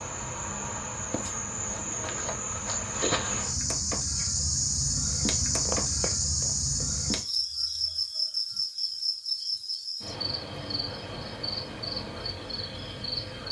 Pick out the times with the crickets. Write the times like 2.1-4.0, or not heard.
0.0-13.4.